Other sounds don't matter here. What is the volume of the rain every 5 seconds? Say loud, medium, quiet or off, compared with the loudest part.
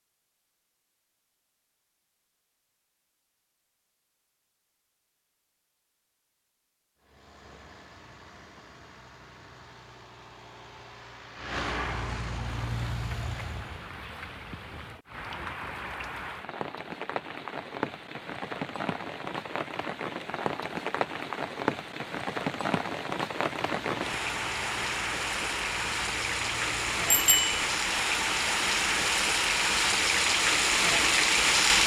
off, off, quiet, quiet, medium, medium, loud.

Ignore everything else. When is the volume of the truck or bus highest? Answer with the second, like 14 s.
12 s.